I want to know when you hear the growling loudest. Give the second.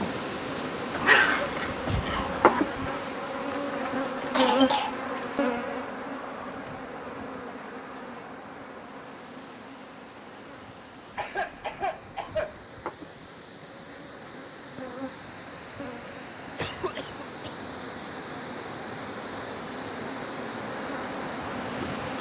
1 s.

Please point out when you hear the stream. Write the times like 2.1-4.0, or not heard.
0.0-22.1.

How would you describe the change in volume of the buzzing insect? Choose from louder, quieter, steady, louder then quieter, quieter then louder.
quieter then louder.